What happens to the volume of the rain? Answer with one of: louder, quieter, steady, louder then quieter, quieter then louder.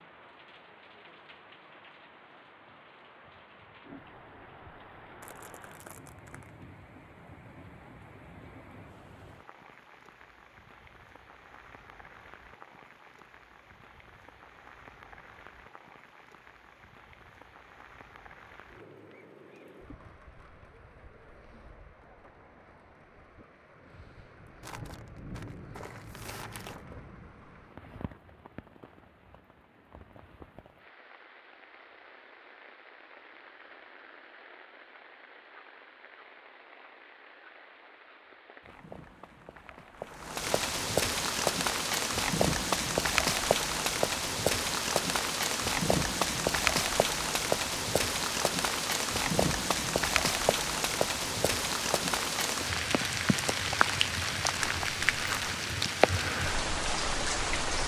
louder.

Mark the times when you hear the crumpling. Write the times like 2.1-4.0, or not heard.
5.2-6.5, 24.6-26.9, 54.6-55.5.